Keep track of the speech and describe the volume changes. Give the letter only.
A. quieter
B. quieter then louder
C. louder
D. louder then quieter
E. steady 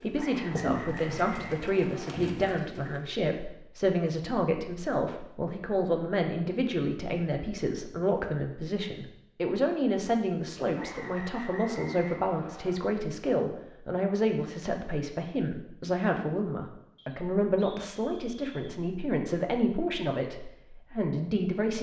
E.